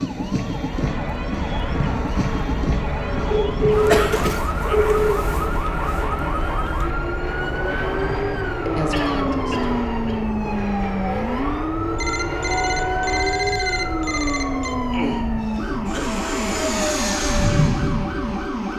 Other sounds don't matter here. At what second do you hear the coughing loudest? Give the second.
4 s.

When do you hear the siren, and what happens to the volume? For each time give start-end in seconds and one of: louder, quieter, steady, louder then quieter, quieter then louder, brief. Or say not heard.
0.0-18.7 steady.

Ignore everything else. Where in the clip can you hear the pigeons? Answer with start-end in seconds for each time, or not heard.
not heard.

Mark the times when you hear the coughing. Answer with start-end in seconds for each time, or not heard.
3.9-4.4, 8.9-10.2, 14.9-16.1.